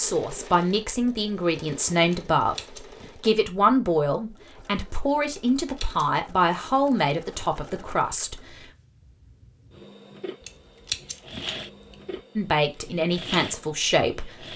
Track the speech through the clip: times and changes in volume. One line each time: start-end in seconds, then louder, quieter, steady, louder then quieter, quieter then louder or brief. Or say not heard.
0.0-8.6 steady
12.3-14.5 brief.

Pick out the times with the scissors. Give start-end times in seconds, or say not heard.
2.1-3.1, 5.3-6.1, 10.4-11.9.